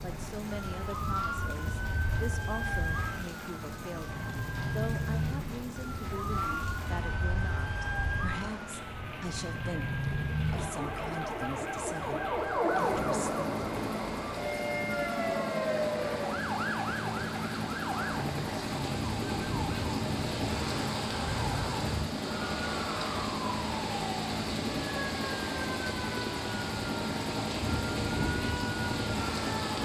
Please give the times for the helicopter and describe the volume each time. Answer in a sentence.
You can hear the helicopter from 0.0 to 29.8 s, getting louder.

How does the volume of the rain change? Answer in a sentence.
The volume of the rain goes up.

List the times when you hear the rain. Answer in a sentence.
The rain can be heard from 0.0 to 29.8 s.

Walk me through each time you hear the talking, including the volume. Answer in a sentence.
You can hear the talking from 0.0 to 13.4 s, at a steady volume.